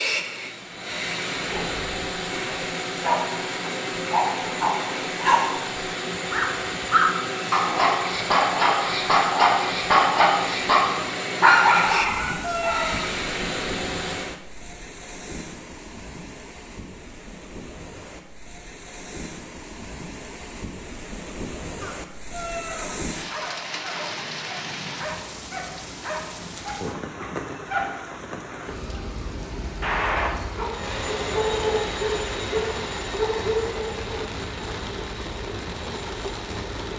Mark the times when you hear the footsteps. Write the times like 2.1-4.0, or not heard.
not heard.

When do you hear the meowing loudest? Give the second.
13 s.